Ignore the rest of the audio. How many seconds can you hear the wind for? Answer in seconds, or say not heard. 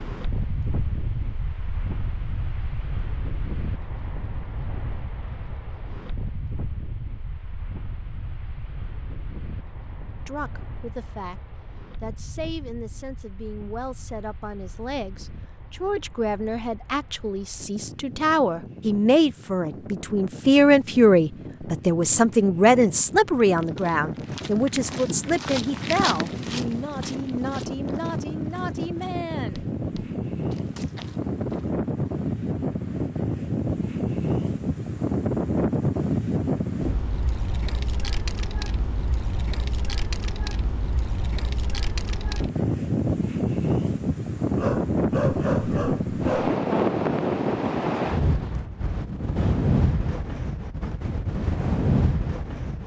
53 s.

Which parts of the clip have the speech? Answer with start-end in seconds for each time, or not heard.
10.2-29.6.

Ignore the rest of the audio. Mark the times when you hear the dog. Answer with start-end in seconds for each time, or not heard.
44.5-46.5.